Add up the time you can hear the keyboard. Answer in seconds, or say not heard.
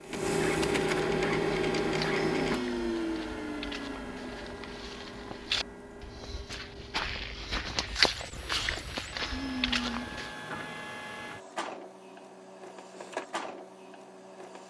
not heard.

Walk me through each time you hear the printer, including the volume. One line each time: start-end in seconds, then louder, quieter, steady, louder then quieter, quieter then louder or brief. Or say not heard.
0.0-14.6 quieter then louder.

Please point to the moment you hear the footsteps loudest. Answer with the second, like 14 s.
8 s.